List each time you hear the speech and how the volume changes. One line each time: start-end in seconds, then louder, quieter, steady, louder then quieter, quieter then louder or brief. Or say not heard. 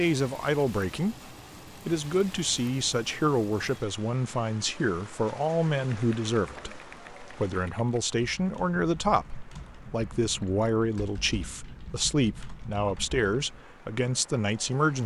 0.0-15.0 steady.